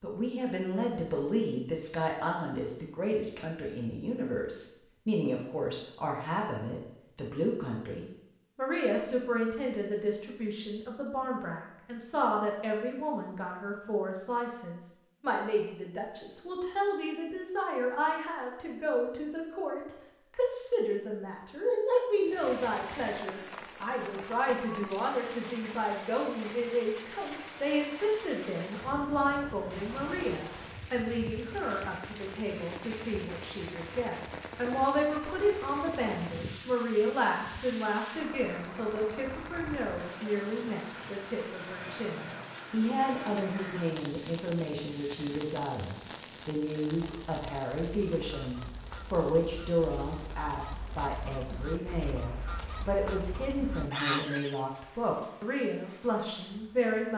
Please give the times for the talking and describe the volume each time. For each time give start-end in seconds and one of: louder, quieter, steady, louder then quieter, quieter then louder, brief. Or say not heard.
0.0-57.1 steady.